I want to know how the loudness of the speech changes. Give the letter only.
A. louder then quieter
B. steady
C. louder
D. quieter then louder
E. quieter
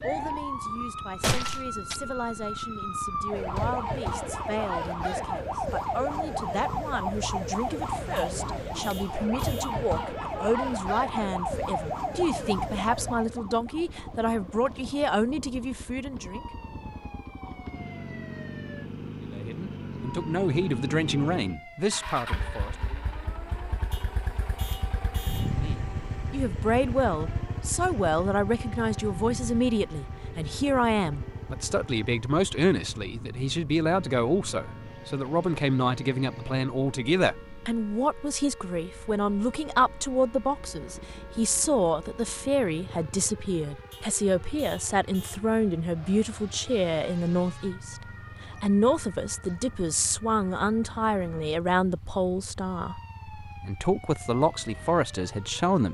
C.